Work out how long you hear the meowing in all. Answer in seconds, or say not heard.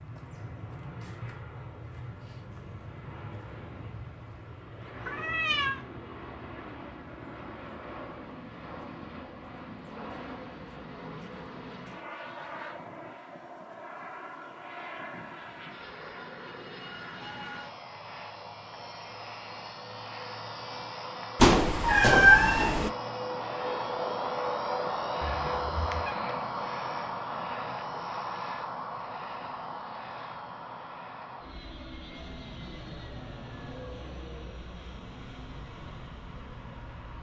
3 s.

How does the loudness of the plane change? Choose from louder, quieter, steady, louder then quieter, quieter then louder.
louder then quieter.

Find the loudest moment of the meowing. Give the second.
22 s.